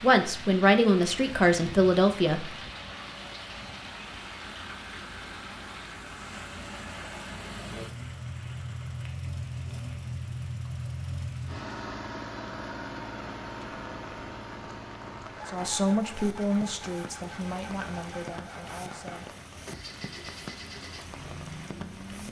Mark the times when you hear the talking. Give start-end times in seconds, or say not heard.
0.0-2.5, 15.4-19.4.